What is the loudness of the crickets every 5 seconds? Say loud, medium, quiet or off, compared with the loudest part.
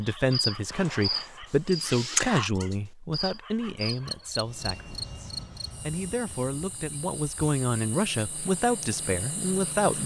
loud, quiet.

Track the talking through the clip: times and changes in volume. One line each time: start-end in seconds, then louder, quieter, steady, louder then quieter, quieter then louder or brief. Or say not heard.
0.0-10.0 quieter then louder.